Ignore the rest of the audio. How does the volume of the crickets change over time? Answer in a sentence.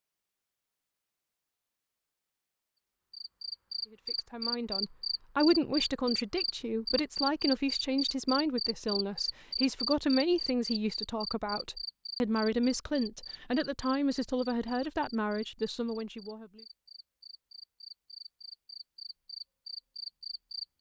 The volume of the crickets goes down, then up.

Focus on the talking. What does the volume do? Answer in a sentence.
The volume of the talking stays about the same.